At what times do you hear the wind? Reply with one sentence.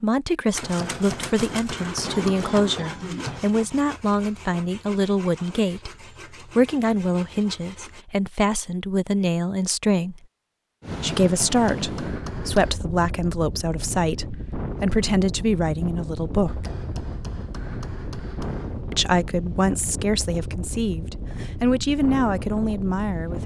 The wind can be heard from 10.8 to 23.4 s.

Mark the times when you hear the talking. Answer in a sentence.
The talking can be heard from 0.0 to 5.9 s, from 6.5 to 10.2 s, from 11.0 to 16.7 s and from 18.9 to 23.4 s.